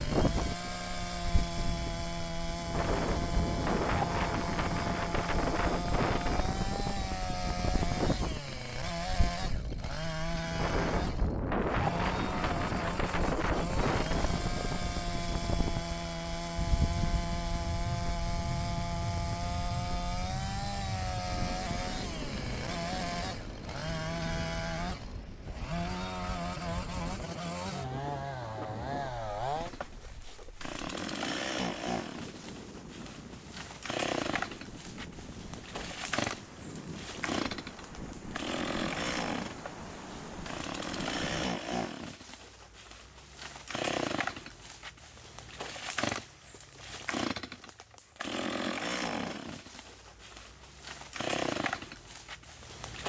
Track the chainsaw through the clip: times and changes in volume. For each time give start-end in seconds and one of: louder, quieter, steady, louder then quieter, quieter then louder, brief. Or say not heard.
0.0-53.0 steady.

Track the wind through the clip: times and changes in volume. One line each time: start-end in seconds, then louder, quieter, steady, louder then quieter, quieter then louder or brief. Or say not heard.
0.0-41.5 quieter.